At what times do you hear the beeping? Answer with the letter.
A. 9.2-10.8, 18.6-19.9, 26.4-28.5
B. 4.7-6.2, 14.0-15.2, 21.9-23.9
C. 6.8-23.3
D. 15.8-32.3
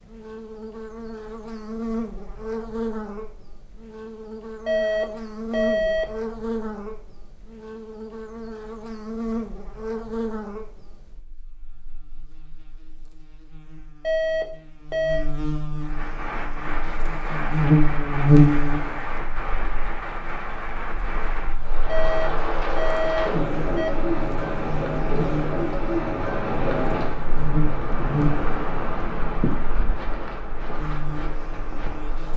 B.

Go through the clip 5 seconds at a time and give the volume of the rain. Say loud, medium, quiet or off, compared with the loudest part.
off, off, off, medium, loud, loud, medium.